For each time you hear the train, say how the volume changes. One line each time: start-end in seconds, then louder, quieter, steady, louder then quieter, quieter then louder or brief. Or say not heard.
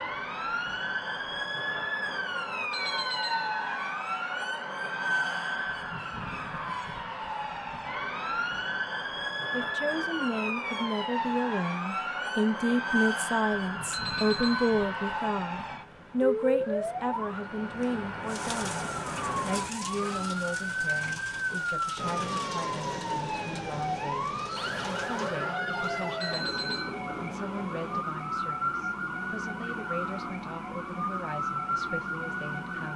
21.9-28.1 quieter.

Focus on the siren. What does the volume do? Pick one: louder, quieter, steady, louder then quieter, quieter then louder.
steady.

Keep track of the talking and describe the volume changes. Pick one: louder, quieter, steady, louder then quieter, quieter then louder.
quieter.